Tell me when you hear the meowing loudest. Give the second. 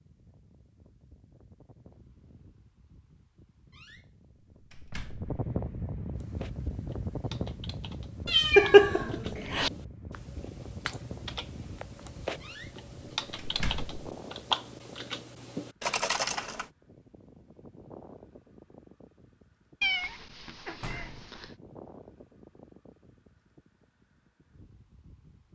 9 s.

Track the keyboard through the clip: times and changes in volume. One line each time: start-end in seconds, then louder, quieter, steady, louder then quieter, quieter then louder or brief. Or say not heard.
6.2-16.6 louder.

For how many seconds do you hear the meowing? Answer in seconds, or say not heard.
3 s.